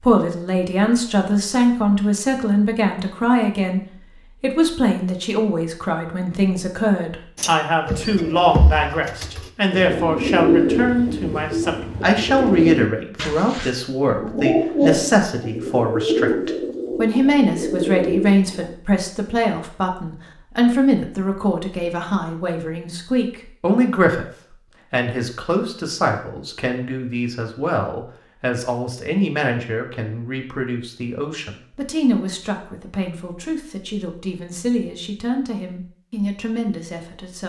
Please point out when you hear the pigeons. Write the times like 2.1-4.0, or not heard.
7.3-18.8.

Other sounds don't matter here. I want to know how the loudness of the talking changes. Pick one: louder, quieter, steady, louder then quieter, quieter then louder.
quieter.